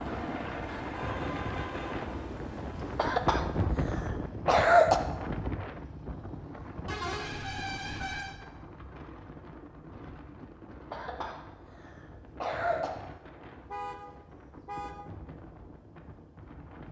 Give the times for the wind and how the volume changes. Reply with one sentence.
You can hear the wind from 0.0 to 16.8 s, getting quieter.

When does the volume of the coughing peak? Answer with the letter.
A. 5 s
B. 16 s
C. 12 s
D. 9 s
A.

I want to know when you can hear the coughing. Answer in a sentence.
You can hear the coughing from 3.0 to 5.0 s and from 10.9 to 12.9 s.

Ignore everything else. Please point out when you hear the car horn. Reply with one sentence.
You can hear the car horn from 0.7 to 2.0 s, from 6.8 to 8.3 s and from 13.7 to 15.1 s.